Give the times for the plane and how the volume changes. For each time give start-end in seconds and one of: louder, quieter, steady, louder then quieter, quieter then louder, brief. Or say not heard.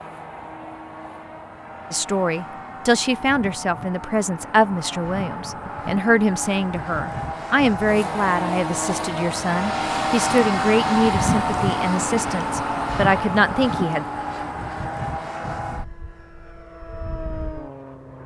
0.0-18.2 louder then quieter.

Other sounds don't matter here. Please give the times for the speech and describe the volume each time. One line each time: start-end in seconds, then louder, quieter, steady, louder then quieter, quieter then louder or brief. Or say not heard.
1.9-14.1 steady.